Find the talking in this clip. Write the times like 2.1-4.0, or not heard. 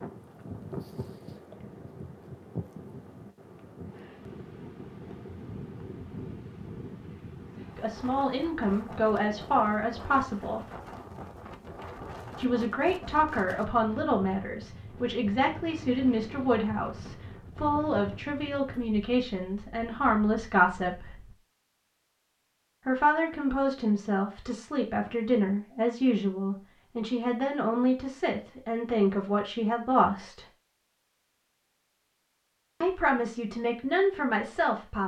7.8-10.6, 12.3-21.1, 22.9-30.4, 32.8-35.0.